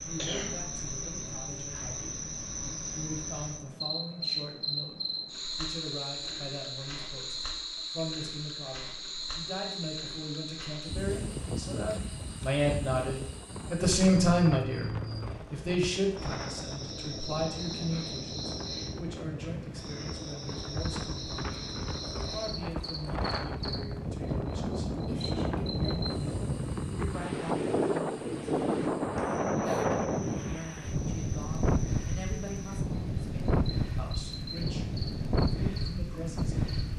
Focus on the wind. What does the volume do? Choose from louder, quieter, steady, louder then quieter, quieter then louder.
louder.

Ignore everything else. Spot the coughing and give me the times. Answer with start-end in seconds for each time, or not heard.
0.1-0.7.